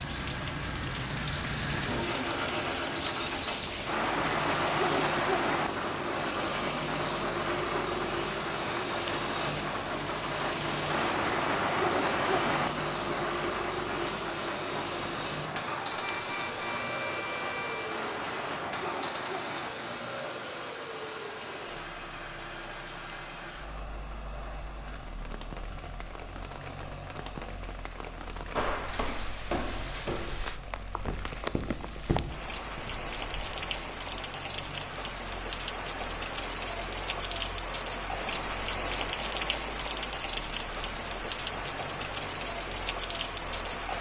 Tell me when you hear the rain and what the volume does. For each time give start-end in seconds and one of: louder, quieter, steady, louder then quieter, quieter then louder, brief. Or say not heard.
0.0-43.9 quieter then louder.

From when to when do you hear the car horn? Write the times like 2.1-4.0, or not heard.
15.9-17.9.